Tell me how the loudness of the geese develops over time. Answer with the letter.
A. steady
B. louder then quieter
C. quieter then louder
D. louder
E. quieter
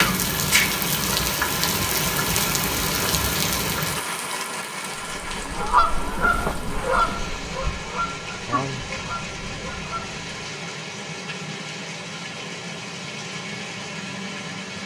E.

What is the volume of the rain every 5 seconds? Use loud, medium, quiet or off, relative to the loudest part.
loud, medium, medium.